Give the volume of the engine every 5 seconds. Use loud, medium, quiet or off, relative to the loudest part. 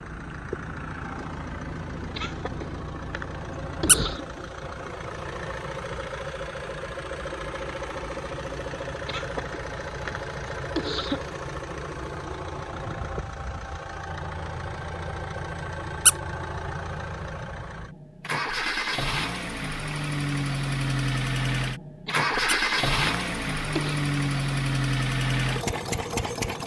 medium, medium, medium, medium, loud, loud.